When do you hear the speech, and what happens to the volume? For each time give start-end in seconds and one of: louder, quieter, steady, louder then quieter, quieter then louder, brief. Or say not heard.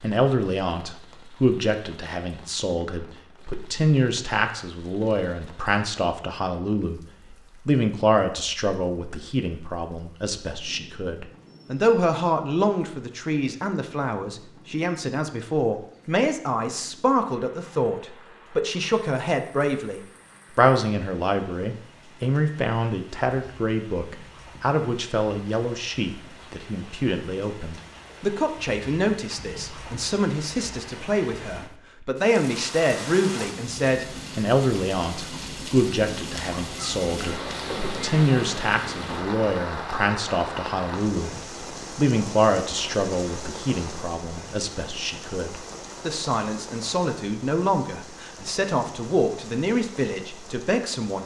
0.0-51.2 steady.